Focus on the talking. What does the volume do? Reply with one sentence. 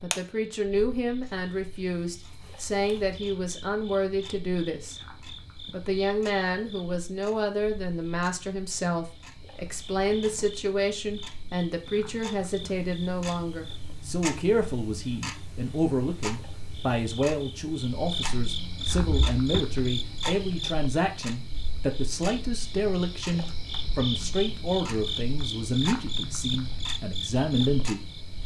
The volume of the talking stays about the same.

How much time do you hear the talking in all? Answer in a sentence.
The talking can be heard for 28 seconds in total.